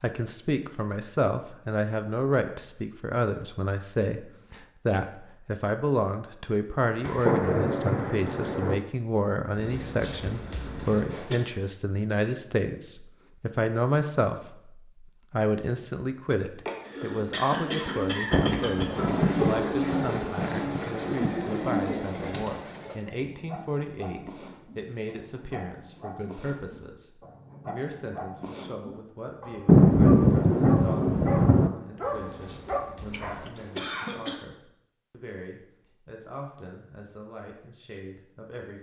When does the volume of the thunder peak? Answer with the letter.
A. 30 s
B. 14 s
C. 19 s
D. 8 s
A.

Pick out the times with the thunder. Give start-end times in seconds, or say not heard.
7.0-8.8, 18.3-21.3, 29.6-31.7.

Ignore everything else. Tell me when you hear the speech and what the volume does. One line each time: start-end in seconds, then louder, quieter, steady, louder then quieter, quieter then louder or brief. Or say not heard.
0.0-38.7 quieter.